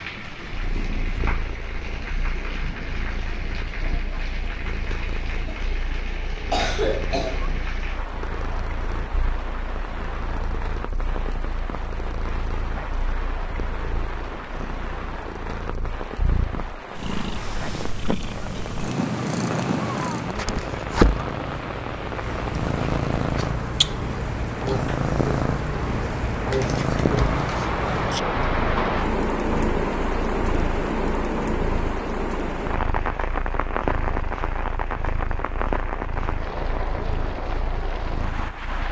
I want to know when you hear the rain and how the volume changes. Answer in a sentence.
You can hear the rain from 0.0 to 38.8 s, getting louder.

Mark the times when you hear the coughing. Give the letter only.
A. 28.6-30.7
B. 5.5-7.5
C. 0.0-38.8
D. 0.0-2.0
B.